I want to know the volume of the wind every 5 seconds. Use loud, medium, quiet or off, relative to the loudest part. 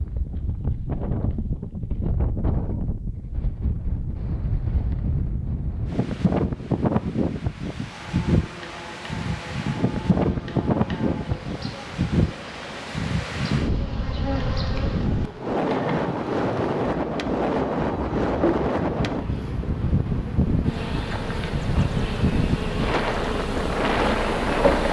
medium, loud, loud, loud, loud.